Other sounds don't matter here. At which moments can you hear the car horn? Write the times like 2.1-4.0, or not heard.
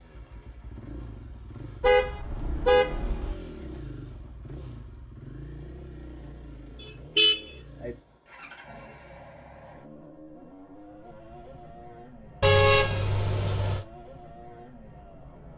1.8-3.4, 7.2-8.0, 12.4-13.8.